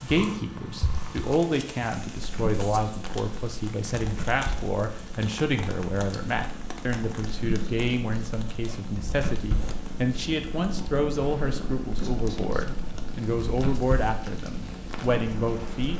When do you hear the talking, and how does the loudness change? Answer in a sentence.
You can hear the talking from 0.0 to 15.9 s, at a steady volume.